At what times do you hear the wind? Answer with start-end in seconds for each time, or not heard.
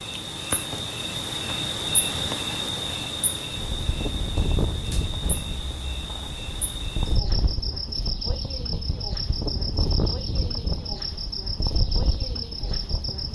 3.5-13.2.